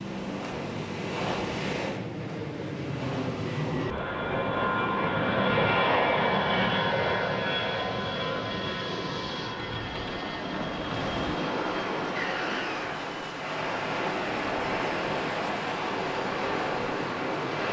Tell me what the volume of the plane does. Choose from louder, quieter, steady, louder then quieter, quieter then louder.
louder then quieter.